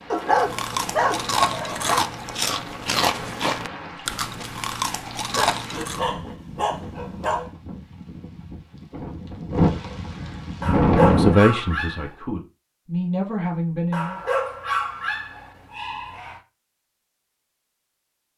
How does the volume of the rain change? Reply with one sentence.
The volume of the rain goes up.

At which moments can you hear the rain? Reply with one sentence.
The rain can be heard from 0.0 to 11.3 s.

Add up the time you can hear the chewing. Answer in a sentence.
The chewing can be heard for 6 seconds in total.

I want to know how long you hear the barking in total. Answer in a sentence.
The barking can be heard for 8 seconds in total.